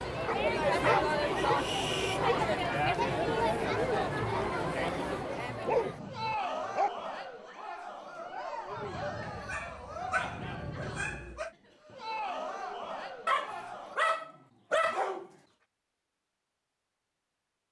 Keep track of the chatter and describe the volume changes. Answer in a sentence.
The volume of the chatter goes down.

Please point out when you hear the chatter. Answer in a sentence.
You can hear the chatter from 0.0 to 14.0 s.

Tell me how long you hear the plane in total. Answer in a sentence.
The plane can be heard for 3 seconds in total.